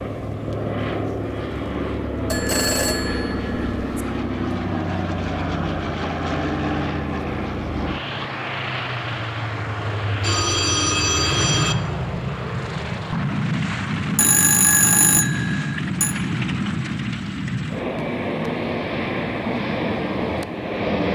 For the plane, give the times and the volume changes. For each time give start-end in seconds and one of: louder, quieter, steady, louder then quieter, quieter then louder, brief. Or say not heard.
0.0-21.1 steady.